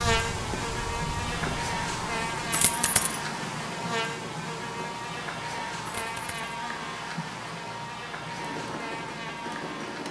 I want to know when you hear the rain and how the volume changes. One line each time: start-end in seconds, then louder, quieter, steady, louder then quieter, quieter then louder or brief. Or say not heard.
0.0-10.0 quieter.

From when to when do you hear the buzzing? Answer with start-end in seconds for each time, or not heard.
0.0-10.0.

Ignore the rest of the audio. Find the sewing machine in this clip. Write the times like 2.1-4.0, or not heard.
8.3-10.0.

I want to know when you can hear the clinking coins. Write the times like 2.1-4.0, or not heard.
2.5-3.2, 5.8-6.4.